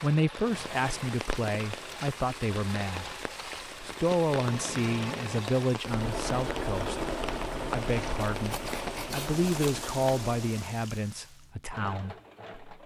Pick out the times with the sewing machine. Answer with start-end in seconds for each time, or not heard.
0.0-12.8.